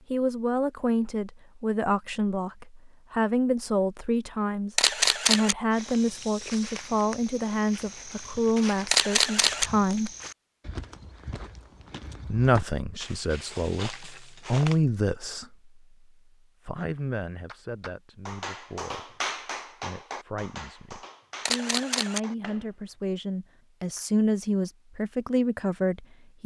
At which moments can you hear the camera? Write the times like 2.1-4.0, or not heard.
4.8-5.5, 8.9-9.7, 21.4-22.2.